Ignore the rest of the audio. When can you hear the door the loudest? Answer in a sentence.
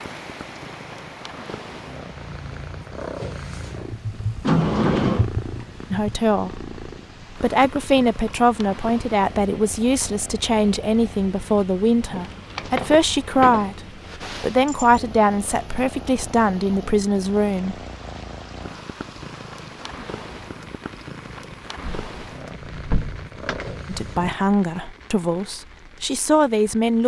The volume of the door peaks at 5 seconds.